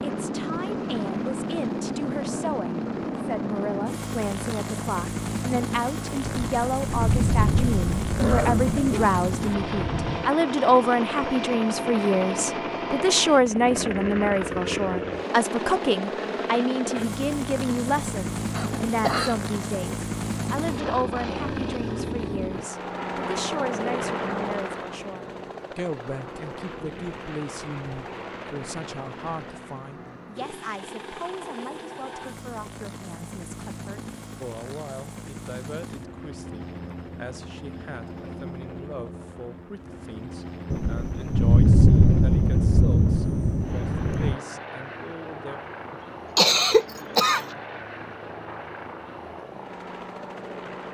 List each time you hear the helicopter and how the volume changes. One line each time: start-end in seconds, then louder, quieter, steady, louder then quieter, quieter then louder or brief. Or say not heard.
0.0-50.9 quieter.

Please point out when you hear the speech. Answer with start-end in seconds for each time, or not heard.
0.0-45.6.